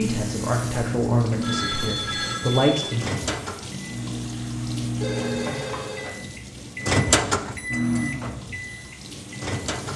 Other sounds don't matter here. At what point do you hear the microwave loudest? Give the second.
7 s.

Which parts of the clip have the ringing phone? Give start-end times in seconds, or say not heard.
1.4-3.0, 5.0-6.2.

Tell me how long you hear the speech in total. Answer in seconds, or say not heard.
3 s.